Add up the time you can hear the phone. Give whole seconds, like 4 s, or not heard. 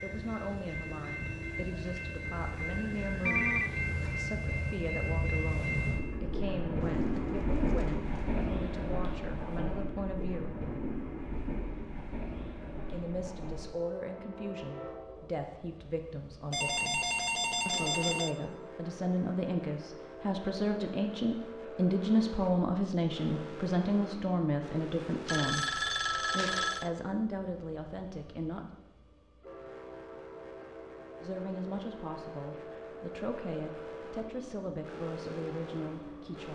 4 s.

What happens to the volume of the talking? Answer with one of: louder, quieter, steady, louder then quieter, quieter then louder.
louder then quieter.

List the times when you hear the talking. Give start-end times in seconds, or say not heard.
0.0-10.6, 12.9-28.7, 31.2-36.5.